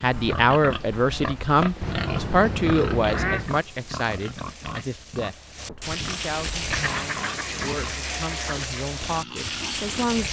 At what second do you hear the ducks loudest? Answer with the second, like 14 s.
3 s.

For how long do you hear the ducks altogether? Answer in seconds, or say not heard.
4 s.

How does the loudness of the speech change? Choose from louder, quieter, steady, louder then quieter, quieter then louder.
quieter.